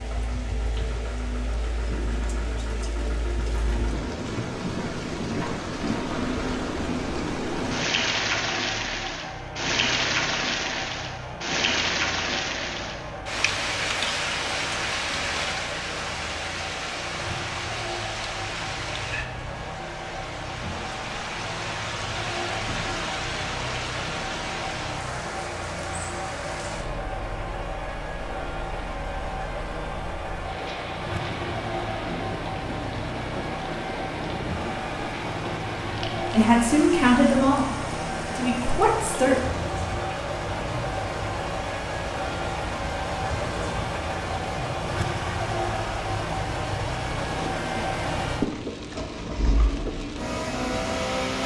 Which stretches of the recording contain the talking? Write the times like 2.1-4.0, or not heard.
36.3-39.4.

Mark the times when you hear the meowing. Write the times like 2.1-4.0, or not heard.
not heard.